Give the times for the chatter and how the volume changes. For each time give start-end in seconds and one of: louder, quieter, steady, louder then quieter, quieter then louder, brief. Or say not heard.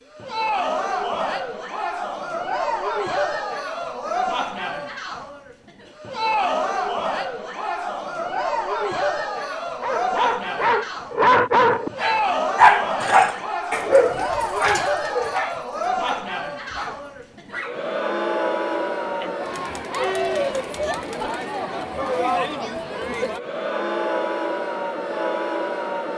0.1-26.1 steady.